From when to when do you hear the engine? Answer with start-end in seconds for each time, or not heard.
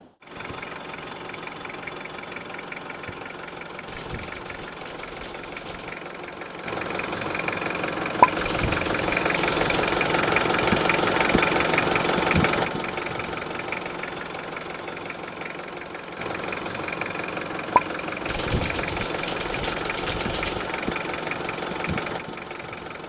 0.0-23.0.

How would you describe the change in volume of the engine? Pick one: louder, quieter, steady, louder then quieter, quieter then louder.
louder then quieter.